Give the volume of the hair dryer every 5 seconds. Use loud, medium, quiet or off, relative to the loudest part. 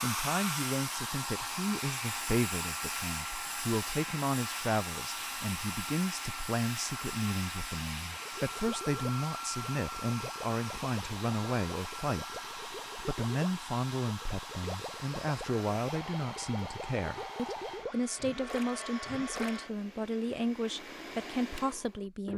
loud, loud, medium, medium, medium.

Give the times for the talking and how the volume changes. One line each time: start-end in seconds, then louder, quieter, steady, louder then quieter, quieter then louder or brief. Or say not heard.
0.0-22.3 steady.